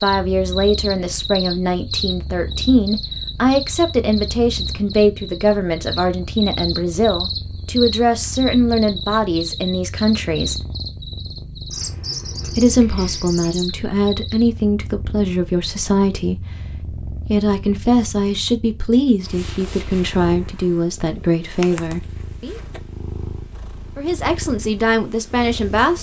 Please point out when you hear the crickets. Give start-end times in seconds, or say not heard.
0.0-14.5.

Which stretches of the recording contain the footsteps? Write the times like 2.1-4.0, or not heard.
not heard.